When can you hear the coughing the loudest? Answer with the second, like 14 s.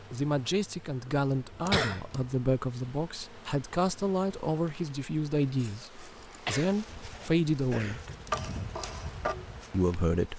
2 s.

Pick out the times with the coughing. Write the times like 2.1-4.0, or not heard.
1.3-2.3, 6.5-8.1.